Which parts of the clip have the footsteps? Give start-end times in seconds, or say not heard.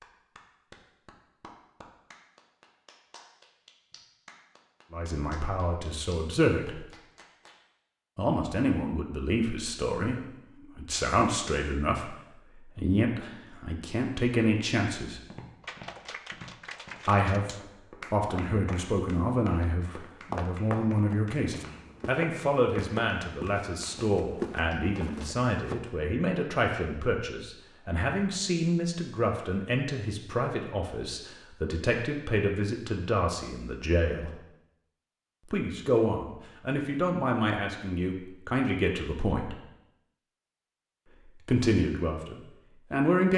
15.2-25.9.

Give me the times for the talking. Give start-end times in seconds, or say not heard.
4.9-6.8, 8.2-15.2, 17.1-17.5, 18.1-34.4, 35.5-39.5, 41.4-43.3.